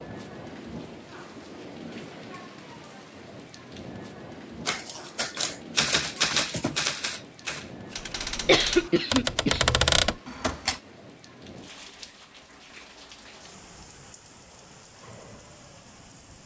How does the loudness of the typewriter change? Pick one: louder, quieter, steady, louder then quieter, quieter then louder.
quieter then louder.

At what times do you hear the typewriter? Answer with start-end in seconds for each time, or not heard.
4.7-10.8.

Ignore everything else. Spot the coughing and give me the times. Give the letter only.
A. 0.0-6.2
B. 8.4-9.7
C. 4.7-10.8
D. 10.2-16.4
B.